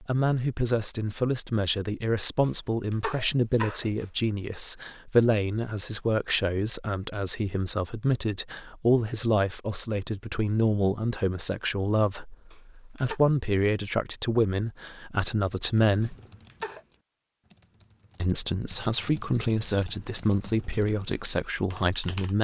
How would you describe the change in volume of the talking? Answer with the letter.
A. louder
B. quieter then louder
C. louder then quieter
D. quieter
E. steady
E.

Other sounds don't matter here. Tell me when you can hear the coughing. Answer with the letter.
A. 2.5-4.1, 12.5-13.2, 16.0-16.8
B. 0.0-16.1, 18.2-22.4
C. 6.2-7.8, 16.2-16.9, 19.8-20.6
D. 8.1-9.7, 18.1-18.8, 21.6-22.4
A.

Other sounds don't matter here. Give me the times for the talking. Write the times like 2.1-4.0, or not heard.
0.0-16.1, 18.2-22.4.